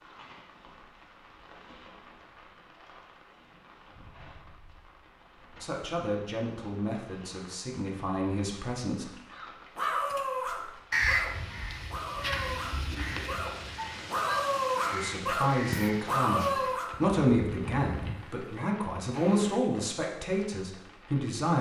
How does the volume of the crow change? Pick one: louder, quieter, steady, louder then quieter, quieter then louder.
quieter.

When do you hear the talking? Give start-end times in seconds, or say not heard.
5.6-9.1, 14.9-21.5.